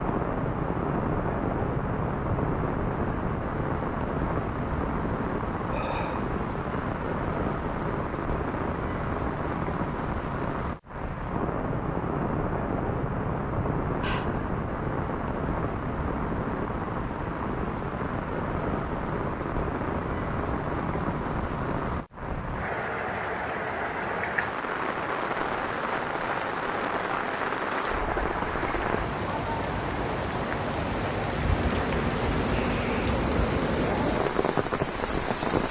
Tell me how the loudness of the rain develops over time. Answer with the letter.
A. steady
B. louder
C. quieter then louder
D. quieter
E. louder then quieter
A.